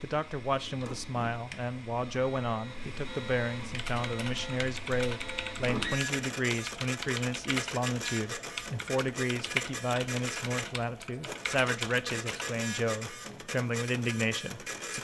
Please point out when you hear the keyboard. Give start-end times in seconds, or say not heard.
3.7-12.6.